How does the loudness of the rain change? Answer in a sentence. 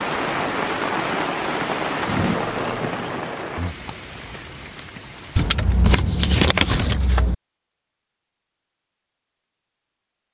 The loudness of the rain goes down.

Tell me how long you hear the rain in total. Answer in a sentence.
The rain can be heard for 6 seconds in total.